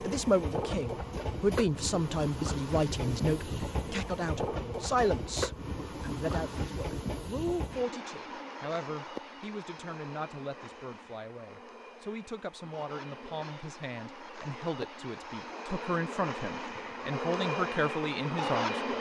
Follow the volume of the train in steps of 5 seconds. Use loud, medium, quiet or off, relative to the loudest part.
loud, loud, medium, loud.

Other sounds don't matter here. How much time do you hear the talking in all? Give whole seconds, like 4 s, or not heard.
19 s.